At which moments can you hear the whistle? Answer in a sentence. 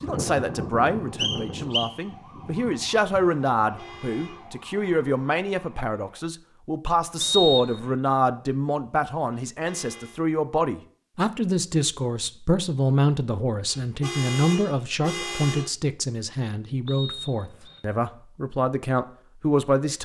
You can hear the whistle from 1.1 to 1.9 s, from 7.2 to 7.9 s and from 16.9 to 17.8 s.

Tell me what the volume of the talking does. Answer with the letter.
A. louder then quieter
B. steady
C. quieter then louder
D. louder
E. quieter
B.